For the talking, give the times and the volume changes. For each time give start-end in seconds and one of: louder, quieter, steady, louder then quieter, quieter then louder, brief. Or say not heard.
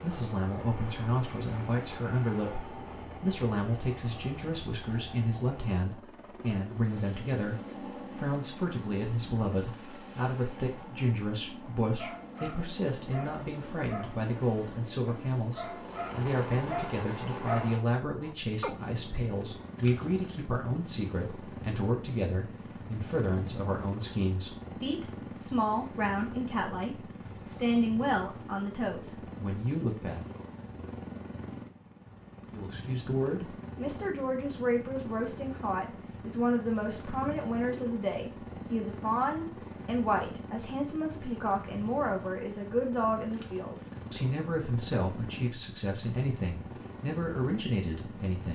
0.0-7.5 steady
8.2-30.2 steady
32.5-48.5 steady.